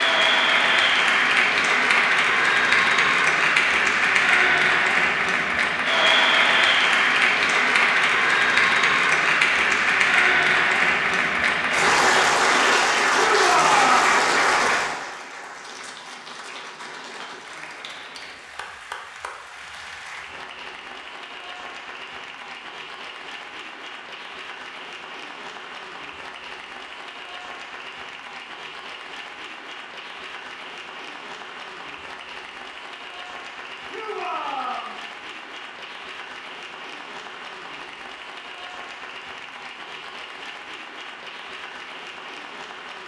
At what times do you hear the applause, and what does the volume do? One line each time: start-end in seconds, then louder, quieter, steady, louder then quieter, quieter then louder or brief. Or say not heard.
0.0-43.0 quieter.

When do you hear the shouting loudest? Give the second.
14 s.